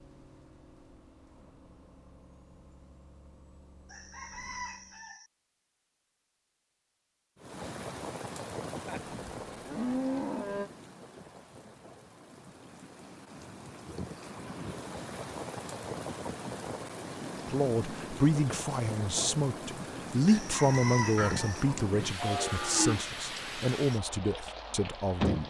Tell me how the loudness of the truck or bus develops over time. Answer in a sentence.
The volume of the truck or bus stays about the same.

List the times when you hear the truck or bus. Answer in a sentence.
You can hear the truck or bus from 0.0 to 5.2 s.